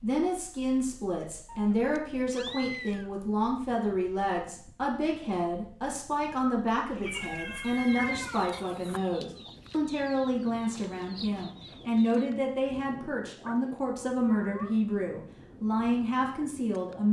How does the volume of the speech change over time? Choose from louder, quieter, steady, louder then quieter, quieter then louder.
steady.